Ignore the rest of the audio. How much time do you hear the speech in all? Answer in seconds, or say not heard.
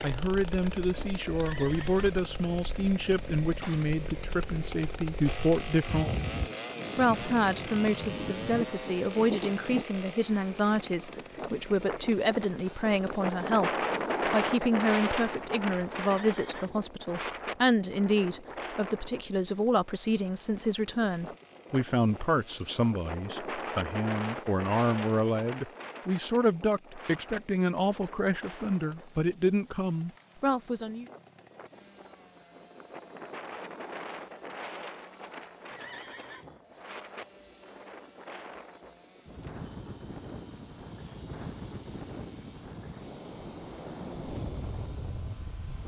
30 s.